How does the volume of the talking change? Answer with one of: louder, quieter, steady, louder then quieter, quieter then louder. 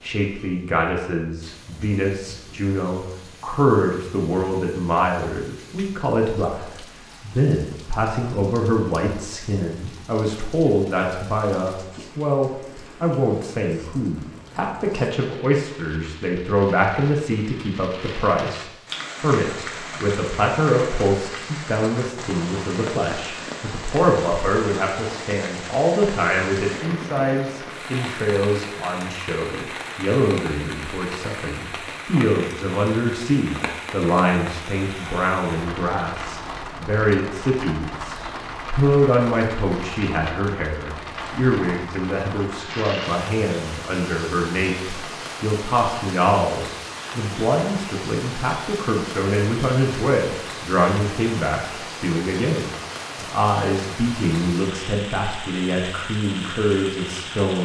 steady.